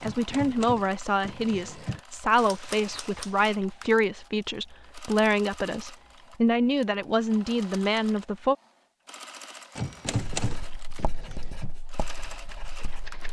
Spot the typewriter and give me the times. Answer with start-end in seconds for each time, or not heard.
0.0-3.5, 9.8-13.2.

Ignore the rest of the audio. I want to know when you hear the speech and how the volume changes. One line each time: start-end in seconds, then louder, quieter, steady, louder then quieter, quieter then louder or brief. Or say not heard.
0.0-8.6 steady.